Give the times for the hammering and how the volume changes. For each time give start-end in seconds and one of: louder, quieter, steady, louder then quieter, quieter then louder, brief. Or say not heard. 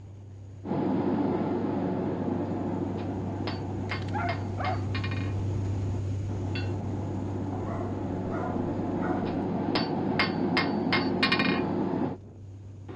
0.7-12.2 quieter then louder.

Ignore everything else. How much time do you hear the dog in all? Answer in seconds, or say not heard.
3 s.